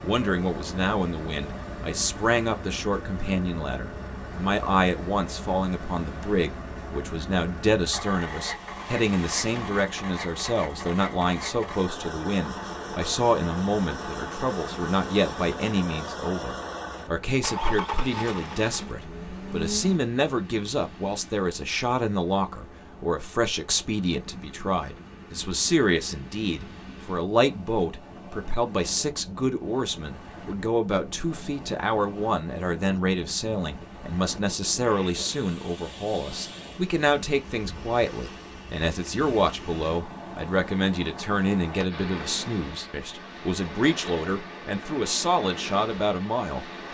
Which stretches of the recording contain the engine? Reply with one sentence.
You can hear the engine from 0.0 to 20.0 s.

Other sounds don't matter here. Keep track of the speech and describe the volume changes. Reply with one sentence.
The loudness of the speech stays about the same.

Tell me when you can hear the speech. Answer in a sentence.
You can hear the speech from 0.0 to 46.9 s.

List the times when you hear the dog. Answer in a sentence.
You can't hear the dog here.